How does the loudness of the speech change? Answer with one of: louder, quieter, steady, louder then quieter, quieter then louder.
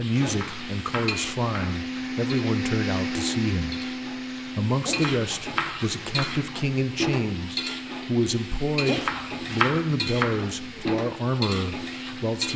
steady.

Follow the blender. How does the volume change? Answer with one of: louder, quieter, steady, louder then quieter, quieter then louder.
quieter.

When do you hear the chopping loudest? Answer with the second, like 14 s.
10 s.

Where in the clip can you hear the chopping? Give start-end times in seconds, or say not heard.
0.2-1.8, 4.8-6.4, 8.8-10.4.